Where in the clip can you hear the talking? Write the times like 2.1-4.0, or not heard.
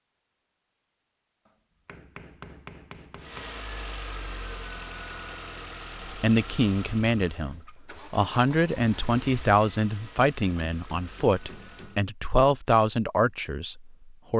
6.2-14.3.